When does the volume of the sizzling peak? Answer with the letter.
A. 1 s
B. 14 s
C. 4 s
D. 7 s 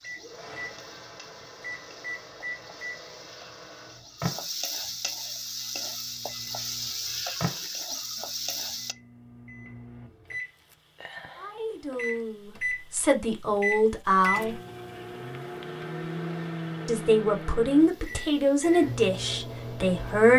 D.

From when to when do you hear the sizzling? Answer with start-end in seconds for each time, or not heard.
0.0-8.9.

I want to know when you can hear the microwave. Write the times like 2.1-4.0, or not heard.
0.0-20.3.